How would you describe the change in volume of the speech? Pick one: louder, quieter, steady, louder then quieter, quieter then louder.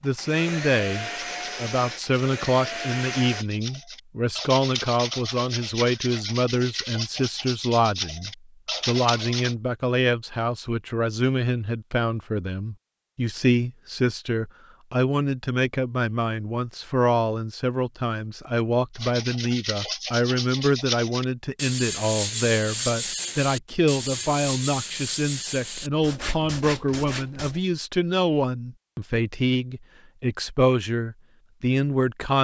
steady.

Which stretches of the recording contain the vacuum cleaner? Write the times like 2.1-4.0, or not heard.
0.0-3.5.